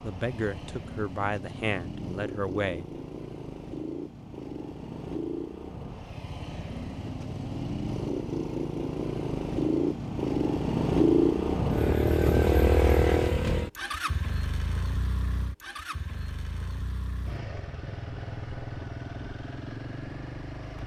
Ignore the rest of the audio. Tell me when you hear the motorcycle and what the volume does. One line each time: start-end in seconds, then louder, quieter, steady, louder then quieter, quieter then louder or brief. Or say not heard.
0.0-20.8 louder then quieter.